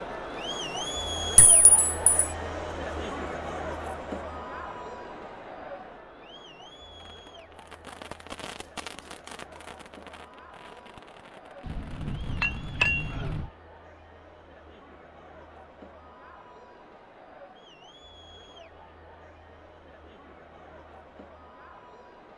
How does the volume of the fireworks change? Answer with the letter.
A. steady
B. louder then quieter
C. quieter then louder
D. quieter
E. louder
D.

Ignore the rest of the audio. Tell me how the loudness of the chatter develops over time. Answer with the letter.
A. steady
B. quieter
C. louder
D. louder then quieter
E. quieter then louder
B.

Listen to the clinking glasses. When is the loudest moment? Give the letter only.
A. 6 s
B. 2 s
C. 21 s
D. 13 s
D.